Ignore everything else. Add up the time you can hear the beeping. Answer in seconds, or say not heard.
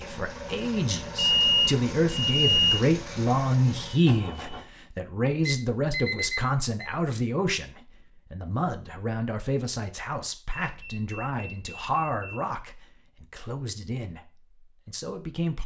5 s.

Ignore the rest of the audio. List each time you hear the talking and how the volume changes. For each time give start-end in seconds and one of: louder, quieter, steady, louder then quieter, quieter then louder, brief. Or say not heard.
0.0-15.6 quieter.